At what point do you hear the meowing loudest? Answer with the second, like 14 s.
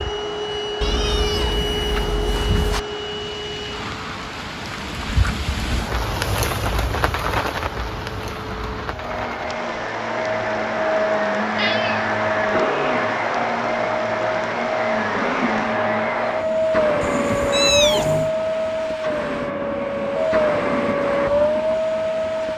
18 s.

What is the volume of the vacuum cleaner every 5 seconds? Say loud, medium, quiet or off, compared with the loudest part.
medium, medium, loud, loud, loud.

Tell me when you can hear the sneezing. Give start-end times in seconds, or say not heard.
not heard.